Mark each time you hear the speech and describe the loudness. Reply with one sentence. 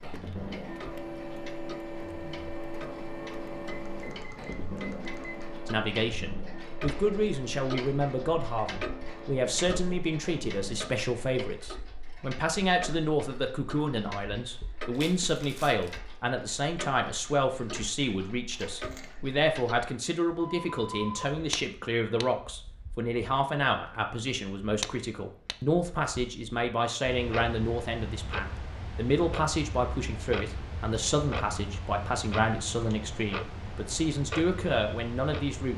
You can hear the speech from 5.7 to 35.7 s, at a steady volume.